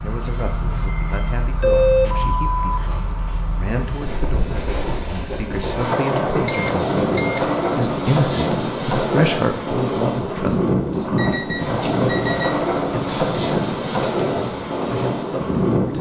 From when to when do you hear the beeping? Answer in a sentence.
You can hear the beeping from 1.6 to 2.9 s, from 6.5 to 7.5 s and from 11.2 to 12.6 s.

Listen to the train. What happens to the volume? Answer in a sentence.
The volume of the train goes up.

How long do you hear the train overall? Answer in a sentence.
The train can be heard for 16 seconds in total.